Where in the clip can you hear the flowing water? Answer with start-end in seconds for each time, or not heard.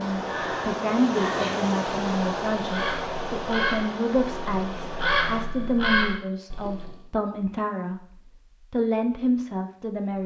0.0-5.5.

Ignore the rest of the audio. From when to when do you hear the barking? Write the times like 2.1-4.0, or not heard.
not heard.